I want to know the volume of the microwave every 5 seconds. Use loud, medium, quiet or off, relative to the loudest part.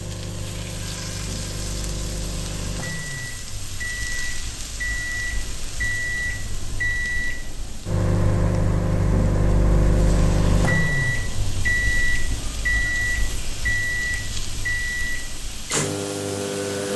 medium, loud, loud, loud.